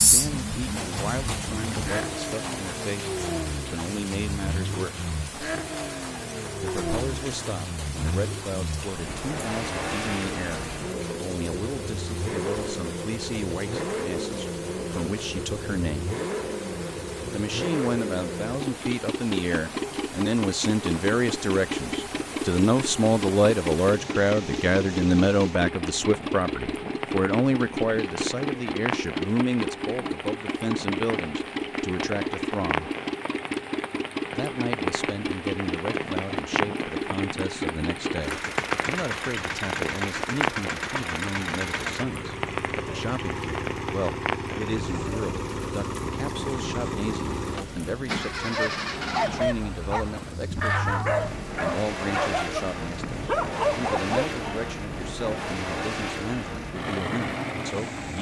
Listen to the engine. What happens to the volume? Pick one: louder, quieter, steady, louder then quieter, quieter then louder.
steady.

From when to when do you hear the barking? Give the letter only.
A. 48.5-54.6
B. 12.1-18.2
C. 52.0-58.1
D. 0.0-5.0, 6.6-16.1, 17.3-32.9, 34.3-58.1
A.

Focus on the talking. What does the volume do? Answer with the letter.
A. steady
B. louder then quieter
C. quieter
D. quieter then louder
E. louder
B.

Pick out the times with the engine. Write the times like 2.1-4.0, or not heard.
0.0-58.1.